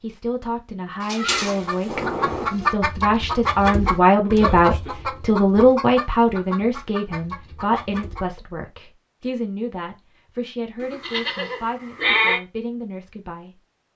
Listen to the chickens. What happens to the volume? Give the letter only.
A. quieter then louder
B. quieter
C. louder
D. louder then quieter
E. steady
B.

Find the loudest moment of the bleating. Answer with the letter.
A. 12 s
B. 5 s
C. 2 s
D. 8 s
A.